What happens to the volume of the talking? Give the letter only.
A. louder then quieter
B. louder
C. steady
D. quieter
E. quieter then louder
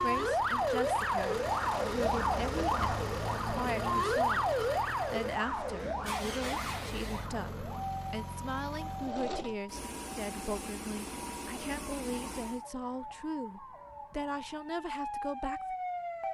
C.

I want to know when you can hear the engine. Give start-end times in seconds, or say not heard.
0.0-12.7.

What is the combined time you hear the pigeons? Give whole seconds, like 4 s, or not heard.
not heard.